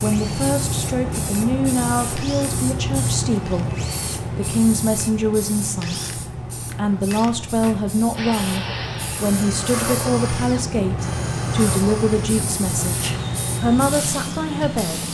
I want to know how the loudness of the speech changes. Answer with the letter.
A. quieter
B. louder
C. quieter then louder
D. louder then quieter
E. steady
E.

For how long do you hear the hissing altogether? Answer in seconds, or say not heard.
15 s.